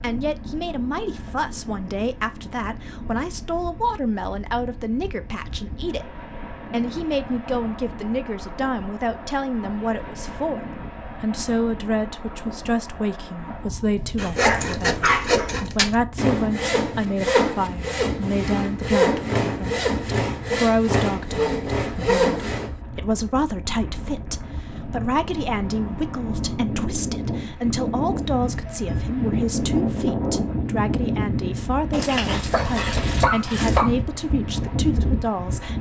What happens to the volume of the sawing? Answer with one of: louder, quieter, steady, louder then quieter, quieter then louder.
steady.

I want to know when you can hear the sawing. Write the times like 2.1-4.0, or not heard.
14.0-22.8.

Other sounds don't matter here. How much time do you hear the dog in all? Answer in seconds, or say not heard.
3 s.